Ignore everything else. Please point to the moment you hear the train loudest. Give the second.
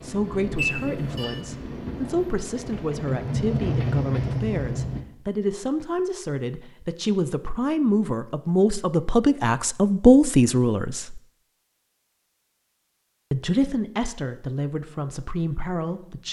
4 s.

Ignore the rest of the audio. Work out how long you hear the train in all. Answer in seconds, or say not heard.
5 s.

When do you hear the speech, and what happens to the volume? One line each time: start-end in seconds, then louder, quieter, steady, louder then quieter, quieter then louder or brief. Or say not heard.
0.0-11.2 louder
13.3-16.2 brief.